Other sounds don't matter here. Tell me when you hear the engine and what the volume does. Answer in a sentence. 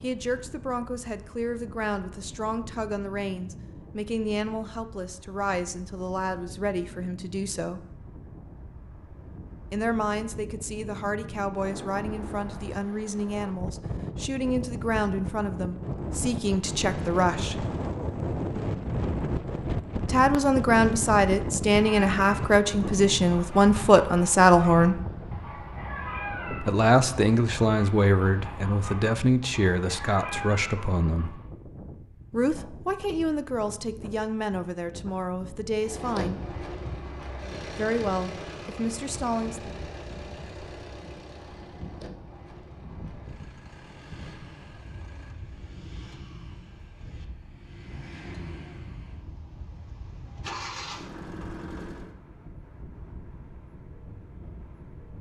The engine can be heard from 35.8 to 52.1 s, getting quieter then louder.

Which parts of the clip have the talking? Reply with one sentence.
You can hear the talking from 0.0 to 7.8 s, from 9.7 to 17.6 s, from 20.1 to 25.0 s, from 26.6 to 31.4 s, from 32.3 to 36.5 s and from 37.8 to 39.6 s.